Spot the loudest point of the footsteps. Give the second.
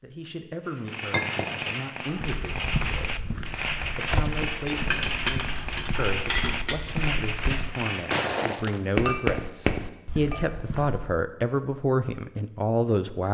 9 s.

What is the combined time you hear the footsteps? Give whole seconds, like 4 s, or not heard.
9 s.